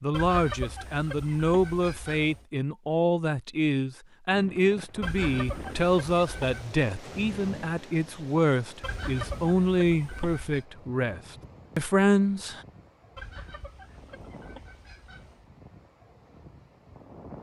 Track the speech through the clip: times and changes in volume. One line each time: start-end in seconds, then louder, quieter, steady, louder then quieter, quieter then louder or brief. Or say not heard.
0.0-12.6 steady.